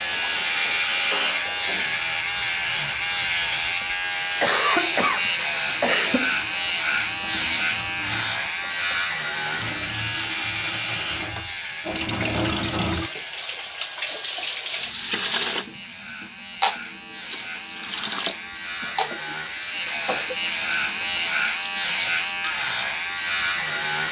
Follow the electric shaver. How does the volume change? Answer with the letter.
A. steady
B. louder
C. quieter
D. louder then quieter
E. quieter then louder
E.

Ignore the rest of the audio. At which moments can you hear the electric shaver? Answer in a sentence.
You can hear the electric shaver from 0.0 to 24.0 s.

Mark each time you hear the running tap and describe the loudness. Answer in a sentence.
The running tap can be heard from 0.0 to 23.8 s, getting louder then quieter.